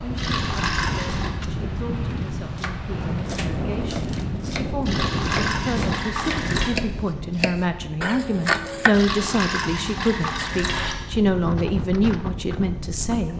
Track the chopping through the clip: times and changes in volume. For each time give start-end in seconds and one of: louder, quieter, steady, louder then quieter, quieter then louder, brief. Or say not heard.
2.1-8.9 louder.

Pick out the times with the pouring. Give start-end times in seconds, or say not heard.
0.1-1.3, 4.8-6.7, 8.9-10.9.